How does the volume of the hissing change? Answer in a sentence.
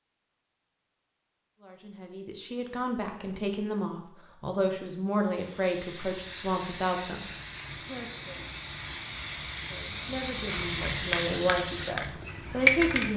The loudness of the hissing goes up.